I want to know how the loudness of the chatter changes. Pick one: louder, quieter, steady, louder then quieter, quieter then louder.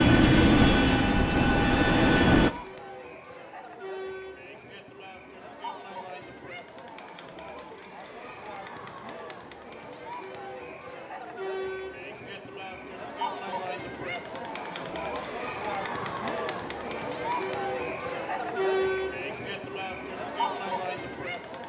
louder.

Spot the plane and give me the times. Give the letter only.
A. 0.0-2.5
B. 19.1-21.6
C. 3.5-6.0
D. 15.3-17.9
A.